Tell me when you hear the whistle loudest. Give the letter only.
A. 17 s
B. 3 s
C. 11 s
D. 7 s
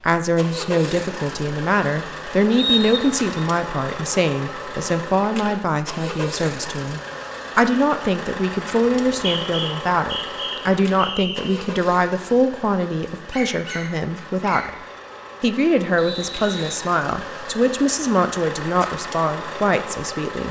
B.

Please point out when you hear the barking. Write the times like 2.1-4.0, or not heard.
13.1-14.7.